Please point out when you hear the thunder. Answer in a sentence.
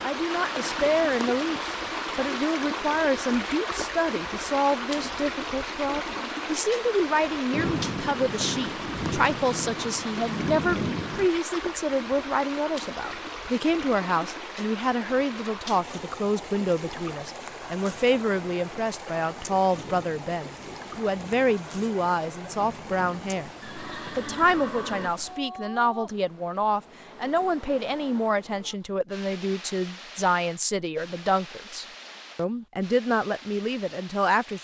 You can hear the thunder from 7.5 to 11.3 s and from 19.7 to 23.4 s.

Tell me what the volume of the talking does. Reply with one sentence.
The volume of the talking stays about the same.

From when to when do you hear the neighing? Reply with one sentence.
The neighing can be heard from 23.6 to 25.1 s.